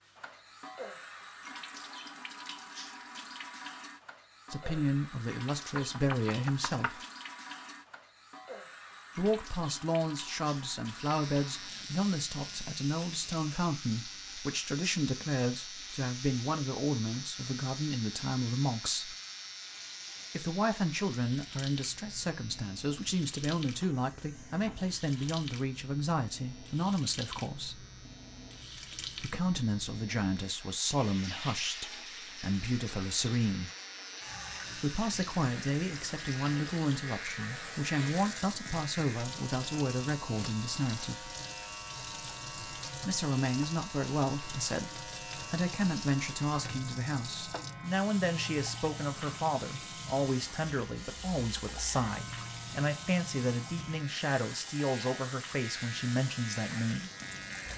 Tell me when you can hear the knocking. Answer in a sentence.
You can hear the knocking from 5.8 to 7.0 s.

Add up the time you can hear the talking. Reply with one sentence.
The talking can be heard for 45 seconds in total.